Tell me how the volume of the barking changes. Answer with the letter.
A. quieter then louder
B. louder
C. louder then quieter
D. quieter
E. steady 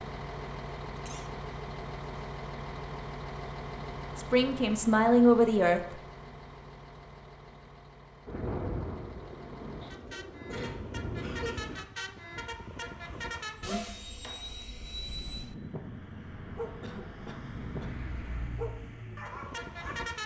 B.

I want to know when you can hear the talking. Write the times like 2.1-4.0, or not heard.
4.2-6.0.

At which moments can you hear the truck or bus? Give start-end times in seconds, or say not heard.
0.0-20.2.